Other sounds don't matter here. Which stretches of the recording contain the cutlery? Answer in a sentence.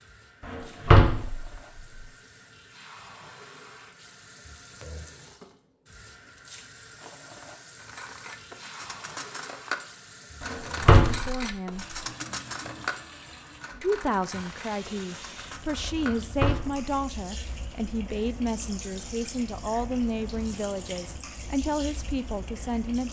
The cutlery can be heard from 7.8 to 16.9 s.